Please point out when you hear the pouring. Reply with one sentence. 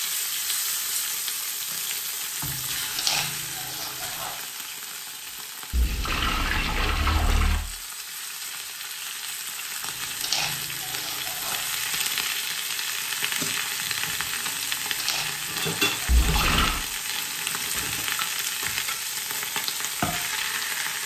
You can hear the pouring from 5.7 to 7.6 s and from 16.1 to 16.9 s.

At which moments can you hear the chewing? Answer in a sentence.
You can hear the chewing from 2.5 to 4.3 s, from 9.8 to 11.6 s and from 14.6 to 16.4 s.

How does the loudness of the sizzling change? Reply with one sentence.
The volume of the sizzling goes down, then up.